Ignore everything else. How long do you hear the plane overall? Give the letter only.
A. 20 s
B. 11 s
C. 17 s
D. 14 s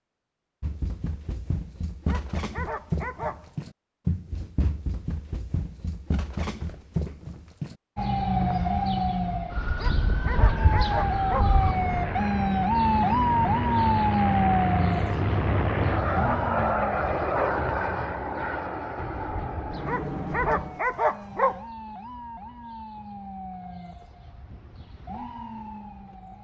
B.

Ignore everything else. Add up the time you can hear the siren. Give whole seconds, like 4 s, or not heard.
18 s.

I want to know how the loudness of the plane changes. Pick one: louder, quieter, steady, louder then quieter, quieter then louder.
louder then quieter.